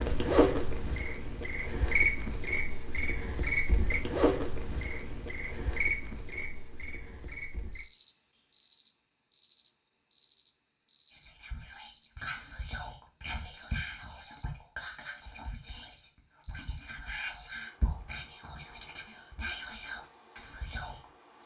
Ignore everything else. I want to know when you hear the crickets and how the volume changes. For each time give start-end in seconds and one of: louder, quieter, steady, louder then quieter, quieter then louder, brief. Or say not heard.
0.0-21.4 quieter.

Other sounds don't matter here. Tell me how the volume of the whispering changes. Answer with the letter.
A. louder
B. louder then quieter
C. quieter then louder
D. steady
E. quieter
C.